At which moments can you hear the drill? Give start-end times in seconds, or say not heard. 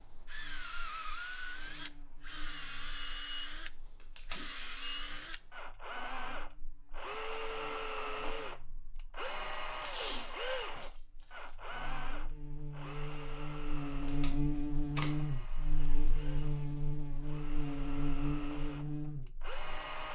0.0-20.1.